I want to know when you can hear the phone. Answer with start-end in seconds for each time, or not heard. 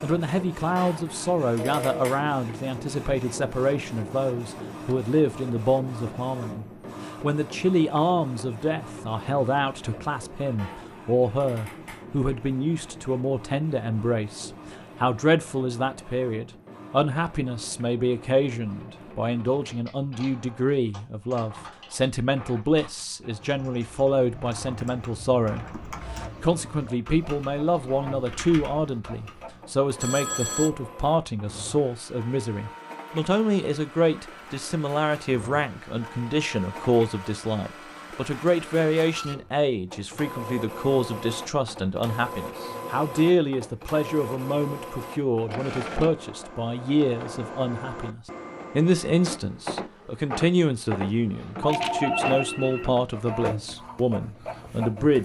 1.6-2.1, 29.9-30.7, 51.6-52.9.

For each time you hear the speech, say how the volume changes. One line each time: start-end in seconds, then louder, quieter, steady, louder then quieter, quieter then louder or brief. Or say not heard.
0.0-55.2 steady.